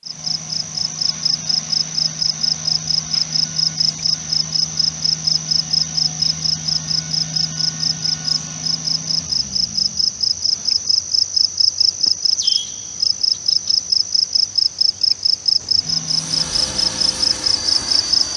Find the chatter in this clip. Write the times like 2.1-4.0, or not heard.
not heard.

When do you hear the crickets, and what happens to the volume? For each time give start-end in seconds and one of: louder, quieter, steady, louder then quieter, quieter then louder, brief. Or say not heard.
0.1-18.3 steady.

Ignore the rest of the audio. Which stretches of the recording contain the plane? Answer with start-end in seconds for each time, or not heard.
16.1-18.3.